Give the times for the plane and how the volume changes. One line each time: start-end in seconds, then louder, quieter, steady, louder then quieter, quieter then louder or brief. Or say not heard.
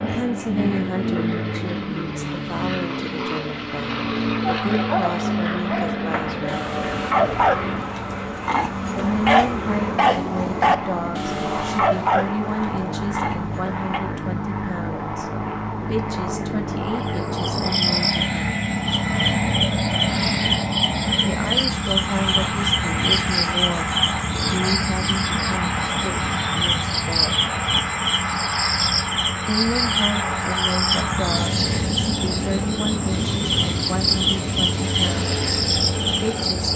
0.0-36.7 steady.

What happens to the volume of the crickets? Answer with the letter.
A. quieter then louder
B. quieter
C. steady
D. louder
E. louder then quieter
C.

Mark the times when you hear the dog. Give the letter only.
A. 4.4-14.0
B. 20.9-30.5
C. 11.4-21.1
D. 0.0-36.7
A.